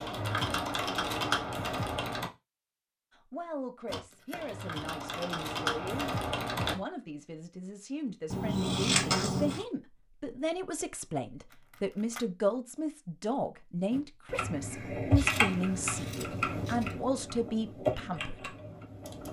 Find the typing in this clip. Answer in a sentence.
You can hear the typing from 0.0 to 2.3 s, from 3.9 to 6.8 s and from 13.9 to 19.2 s.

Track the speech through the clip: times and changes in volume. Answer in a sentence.
You can hear the speech from 3.3 to 18.6 s, getting louder.